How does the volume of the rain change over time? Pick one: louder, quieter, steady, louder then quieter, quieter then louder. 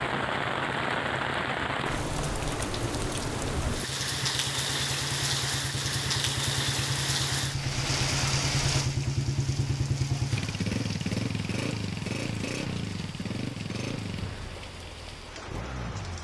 quieter.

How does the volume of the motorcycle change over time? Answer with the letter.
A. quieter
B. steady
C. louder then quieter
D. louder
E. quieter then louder
C.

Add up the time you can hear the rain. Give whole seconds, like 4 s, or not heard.
16 s.